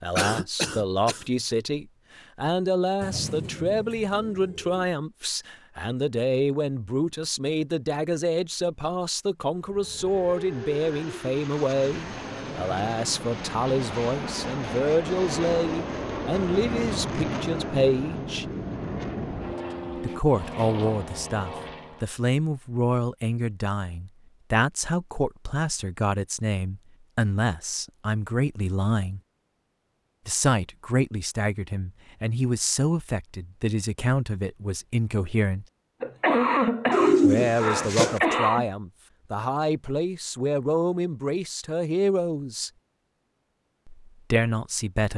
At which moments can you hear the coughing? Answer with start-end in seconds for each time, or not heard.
0.1-1.2, 36.0-38.6.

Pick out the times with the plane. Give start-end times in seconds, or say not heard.
9.6-22.1.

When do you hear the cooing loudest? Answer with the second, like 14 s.
37 s.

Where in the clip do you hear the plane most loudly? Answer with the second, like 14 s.
17 s.